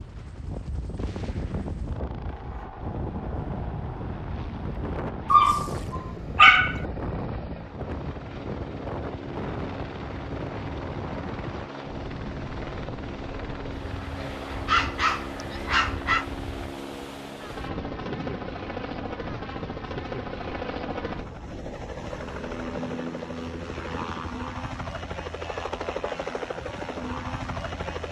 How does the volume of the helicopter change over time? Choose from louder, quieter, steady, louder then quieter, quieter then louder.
louder.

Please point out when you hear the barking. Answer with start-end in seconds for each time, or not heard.
5.3-6.8, 14.2-16.2.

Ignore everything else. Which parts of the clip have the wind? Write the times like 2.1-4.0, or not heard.
0.0-22.6.